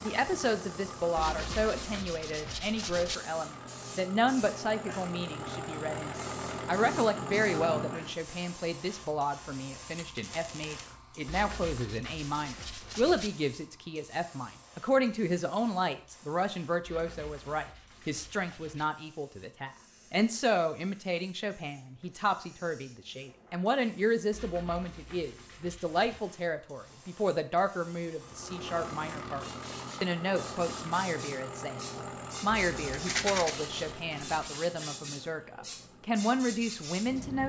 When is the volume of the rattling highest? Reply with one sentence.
The volume of the rattling peaks at 33 seconds.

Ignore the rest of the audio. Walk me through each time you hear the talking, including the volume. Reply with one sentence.
You can hear the talking from 0.0 to 37.4 s, at a steady volume.